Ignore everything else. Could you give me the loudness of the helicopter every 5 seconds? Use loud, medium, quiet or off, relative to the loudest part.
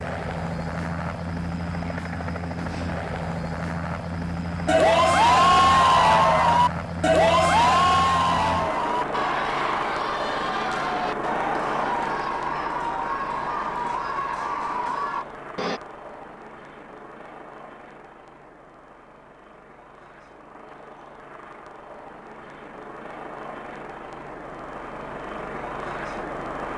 loud, loud, loud, quiet, medium, loud.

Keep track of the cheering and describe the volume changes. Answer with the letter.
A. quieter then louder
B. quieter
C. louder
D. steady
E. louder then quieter
B.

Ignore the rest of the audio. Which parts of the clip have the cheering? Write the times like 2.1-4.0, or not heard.
4.7-15.8.